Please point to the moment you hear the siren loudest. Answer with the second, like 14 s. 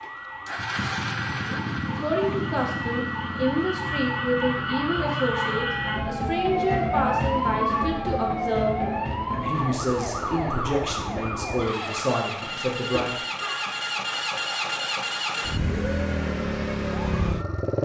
7 s.